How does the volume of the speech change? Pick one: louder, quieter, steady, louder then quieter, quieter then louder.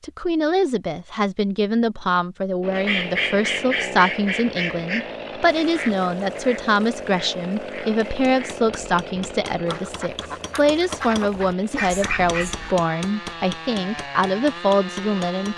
steady.